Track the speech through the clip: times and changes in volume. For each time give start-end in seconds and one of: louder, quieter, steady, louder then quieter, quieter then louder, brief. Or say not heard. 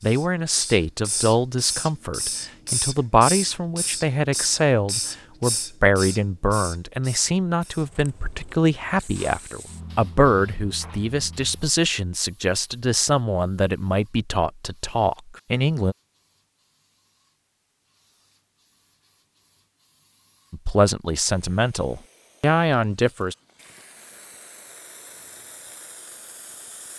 0.0-15.9 steady
20.5-23.4 brief.